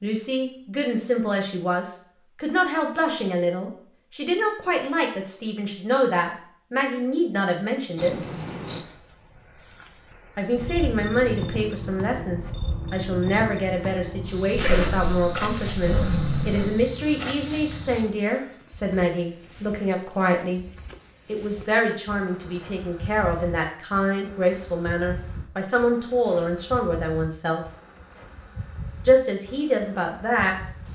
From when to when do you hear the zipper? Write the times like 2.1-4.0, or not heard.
14.6-16.8.